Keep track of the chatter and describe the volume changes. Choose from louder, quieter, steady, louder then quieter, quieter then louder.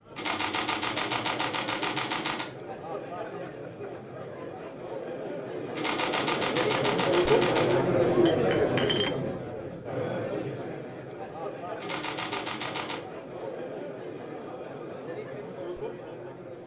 louder then quieter.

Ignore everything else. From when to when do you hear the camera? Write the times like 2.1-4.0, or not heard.
0.1-2.5, 5.8-7.8, 11.8-13.0.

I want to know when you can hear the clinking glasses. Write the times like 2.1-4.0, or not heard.
8.2-9.1.